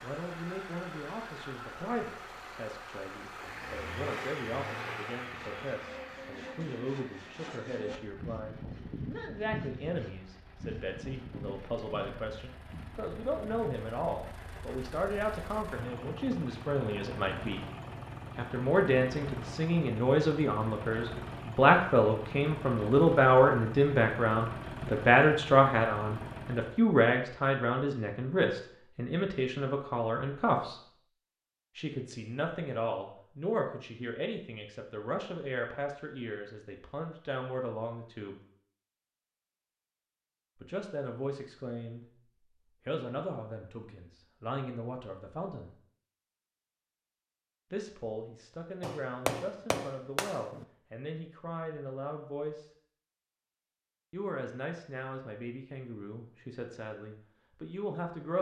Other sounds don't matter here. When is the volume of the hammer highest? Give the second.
49 s.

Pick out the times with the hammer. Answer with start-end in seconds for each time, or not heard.
48.8-50.6.